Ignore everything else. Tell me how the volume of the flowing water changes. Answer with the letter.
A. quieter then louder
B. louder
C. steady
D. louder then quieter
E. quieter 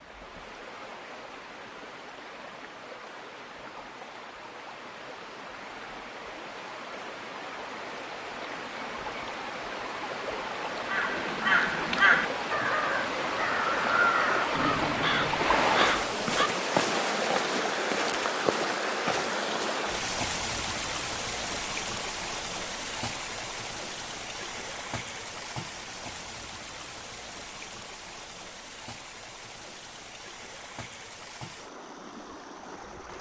D.